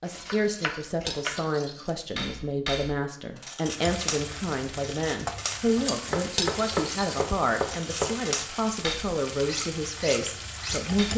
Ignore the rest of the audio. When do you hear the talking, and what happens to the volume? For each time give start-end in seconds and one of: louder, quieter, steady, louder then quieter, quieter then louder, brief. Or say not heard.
0.0-11.1 steady.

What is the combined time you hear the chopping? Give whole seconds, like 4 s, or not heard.
4 s.